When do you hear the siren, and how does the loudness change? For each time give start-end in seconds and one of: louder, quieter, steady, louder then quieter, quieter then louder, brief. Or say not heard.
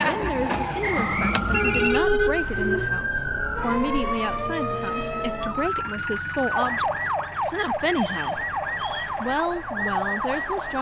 0.0-10.7 steady.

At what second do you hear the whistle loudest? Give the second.
1 s.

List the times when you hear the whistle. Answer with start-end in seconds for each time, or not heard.
0.8-1.4, 7.9-9.2.